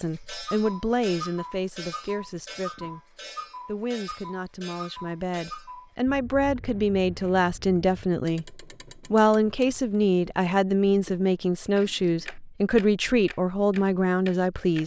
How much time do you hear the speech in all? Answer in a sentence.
You can hear the speech for 15 seconds altogether.